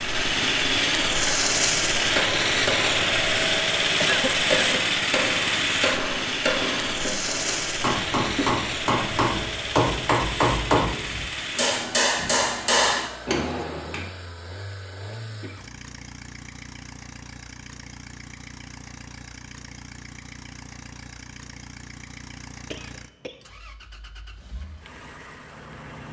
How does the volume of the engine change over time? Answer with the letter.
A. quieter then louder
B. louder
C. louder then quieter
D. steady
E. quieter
E.